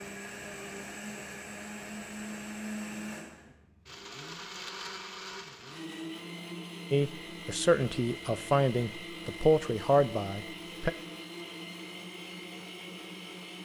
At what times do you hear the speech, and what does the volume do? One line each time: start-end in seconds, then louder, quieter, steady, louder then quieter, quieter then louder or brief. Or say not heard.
6.9-10.9 steady.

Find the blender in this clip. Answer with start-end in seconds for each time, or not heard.
0.0-13.5.